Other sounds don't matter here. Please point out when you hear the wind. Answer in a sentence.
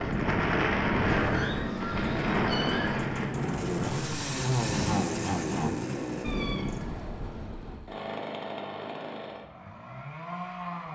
You can hear the wind from 0.0 to 7.3 s.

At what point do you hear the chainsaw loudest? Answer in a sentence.
The loudest moment of the chainsaw is at 5 seconds.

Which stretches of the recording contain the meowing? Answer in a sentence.
You can hear the meowing from 1.2 to 3.0 s and from 6.2 to 7.8 s.